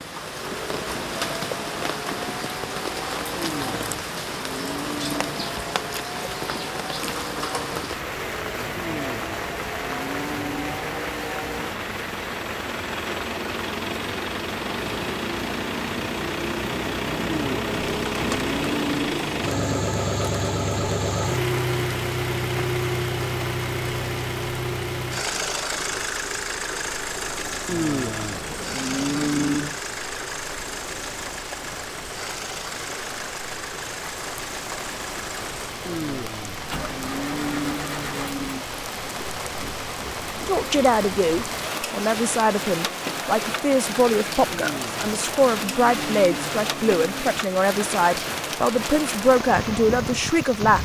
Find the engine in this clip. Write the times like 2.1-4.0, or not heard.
0.1-50.5.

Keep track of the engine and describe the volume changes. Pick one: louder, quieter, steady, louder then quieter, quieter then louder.
louder then quieter.